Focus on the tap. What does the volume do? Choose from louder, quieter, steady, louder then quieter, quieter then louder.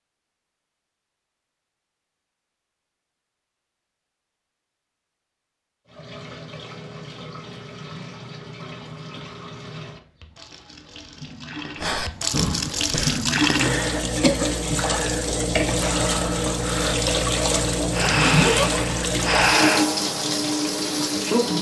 louder.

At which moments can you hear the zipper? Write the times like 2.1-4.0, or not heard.
17.9-18.7.